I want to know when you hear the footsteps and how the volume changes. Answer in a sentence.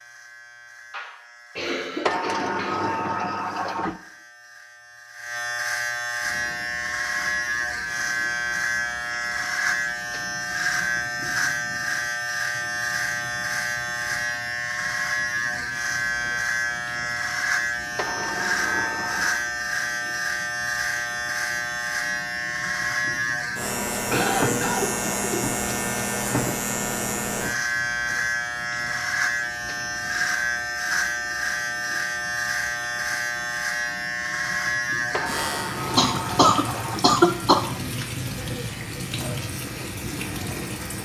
The footsteps can't be heard in this clip.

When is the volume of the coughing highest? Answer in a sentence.
The volume of the coughing peaks at 37 seconds.